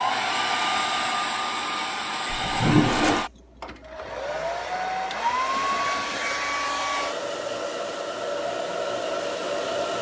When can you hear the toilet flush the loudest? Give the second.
3 s.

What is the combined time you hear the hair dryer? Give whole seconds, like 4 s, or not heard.
10 s.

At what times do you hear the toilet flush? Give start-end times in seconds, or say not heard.
2.2-3.2, 5.5-7.1.